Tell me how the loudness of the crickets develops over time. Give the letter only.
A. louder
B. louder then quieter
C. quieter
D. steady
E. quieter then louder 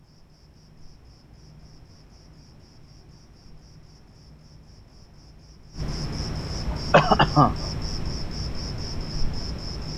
A.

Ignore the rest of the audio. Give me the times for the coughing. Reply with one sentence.
You can hear the coughing from 6.7 to 7.5 s.